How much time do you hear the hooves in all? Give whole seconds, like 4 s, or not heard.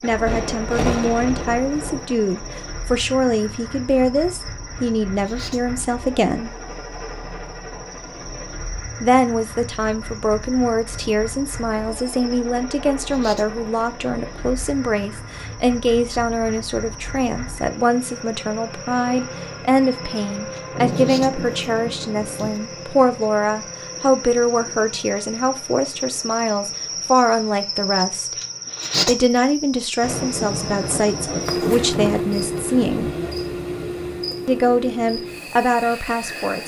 not heard.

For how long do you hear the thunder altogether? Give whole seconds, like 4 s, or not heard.
8 s.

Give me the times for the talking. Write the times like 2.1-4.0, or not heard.
0.0-6.5, 9.0-28.3, 29.1-33.1, 34.5-36.6.